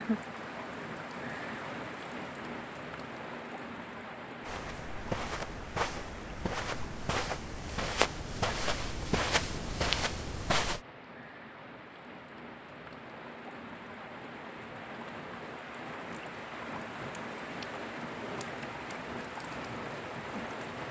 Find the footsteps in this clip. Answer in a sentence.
The footsteps can be heard from 4.4 to 10.8 s.